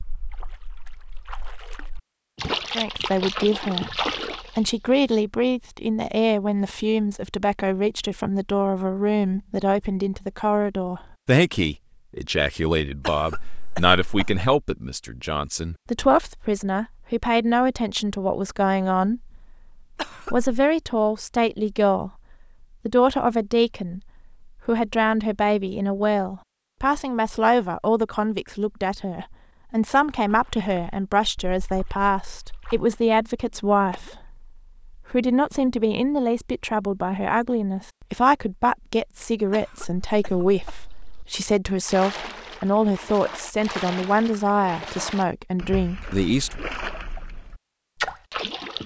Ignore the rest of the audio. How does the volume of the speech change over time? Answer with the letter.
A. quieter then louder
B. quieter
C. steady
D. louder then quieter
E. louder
C.